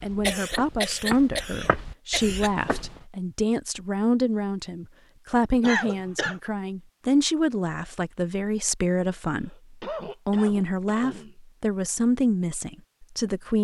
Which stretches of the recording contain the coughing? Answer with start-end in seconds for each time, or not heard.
0.2-2.5, 5.6-6.3, 9.3-11.3.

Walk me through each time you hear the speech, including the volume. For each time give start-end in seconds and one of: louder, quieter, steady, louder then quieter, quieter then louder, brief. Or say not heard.
0.0-13.5 steady.